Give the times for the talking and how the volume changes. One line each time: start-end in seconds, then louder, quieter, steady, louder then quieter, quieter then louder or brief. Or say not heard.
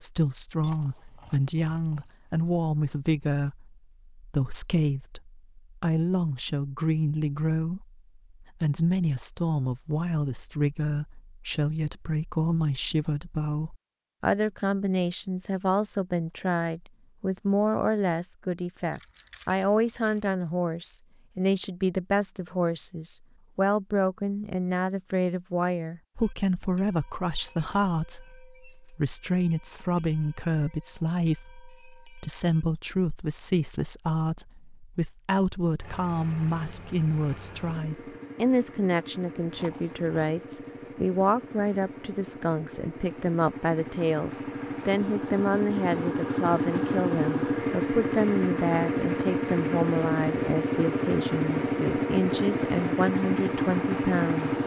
0.0-54.6 steady.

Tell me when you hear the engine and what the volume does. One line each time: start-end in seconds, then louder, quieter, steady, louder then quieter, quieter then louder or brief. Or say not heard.
35.8-54.6 louder.